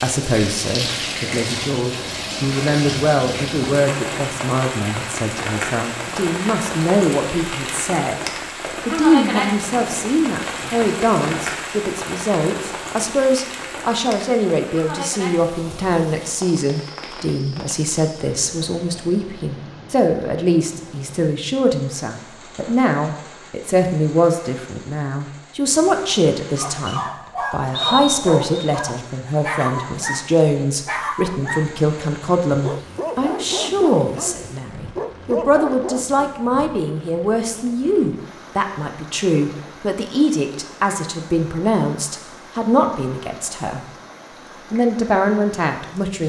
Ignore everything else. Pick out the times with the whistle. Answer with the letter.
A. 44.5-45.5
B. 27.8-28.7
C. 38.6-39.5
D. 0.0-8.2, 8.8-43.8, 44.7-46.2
B.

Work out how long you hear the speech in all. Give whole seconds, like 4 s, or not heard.
45 s.